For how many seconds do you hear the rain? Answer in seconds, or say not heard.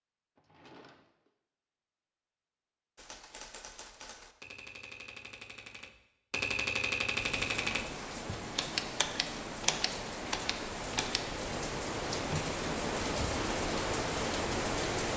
8 s.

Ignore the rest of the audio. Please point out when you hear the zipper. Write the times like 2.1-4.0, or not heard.
not heard.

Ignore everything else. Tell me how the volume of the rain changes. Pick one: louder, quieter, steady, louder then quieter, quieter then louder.
louder.